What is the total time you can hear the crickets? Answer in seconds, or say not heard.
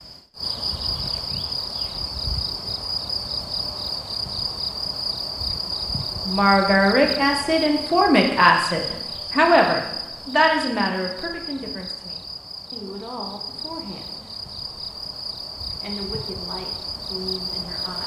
18 s.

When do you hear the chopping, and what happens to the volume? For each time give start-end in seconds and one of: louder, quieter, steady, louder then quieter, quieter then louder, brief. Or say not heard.
not heard.